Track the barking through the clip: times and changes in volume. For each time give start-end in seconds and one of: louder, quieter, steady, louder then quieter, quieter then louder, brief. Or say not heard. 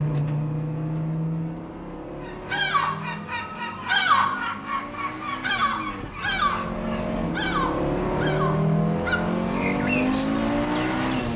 not heard.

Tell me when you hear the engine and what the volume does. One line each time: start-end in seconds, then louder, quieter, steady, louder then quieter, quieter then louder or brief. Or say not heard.
0.0-11.3 quieter then louder.